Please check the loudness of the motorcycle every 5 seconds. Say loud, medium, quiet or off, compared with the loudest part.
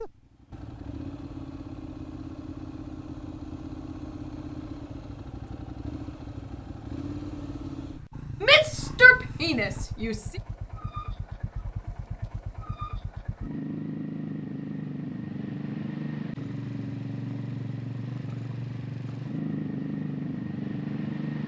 medium, medium, medium, loud, loud.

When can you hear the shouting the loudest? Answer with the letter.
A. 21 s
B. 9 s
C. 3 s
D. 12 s
B.